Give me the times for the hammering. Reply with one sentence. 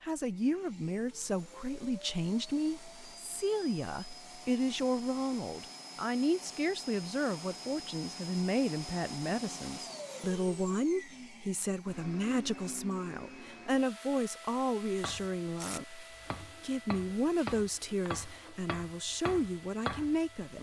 The hammering can be heard from 15.0 to 20.5 s.